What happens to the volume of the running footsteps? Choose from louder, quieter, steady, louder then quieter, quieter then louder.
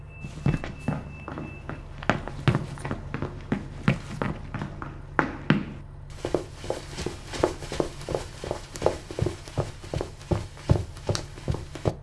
steady.